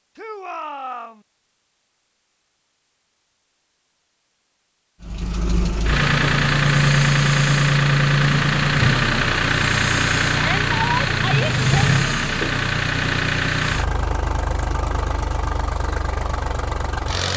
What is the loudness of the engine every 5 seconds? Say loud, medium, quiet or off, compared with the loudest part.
off, loud, loud, medium.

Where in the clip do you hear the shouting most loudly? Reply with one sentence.
The loudest moment of the shouting is at 11 seconds.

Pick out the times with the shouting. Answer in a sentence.
You can hear the shouting from 0.1 to 1.2 s and from 10.3 to 11.9 s.